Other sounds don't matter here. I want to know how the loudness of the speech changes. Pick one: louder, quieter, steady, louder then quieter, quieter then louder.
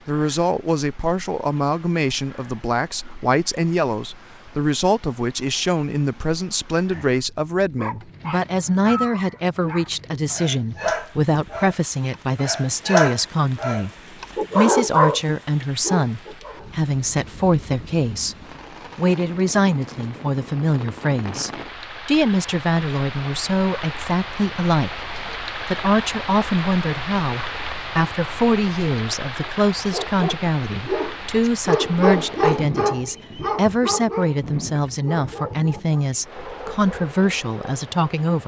steady.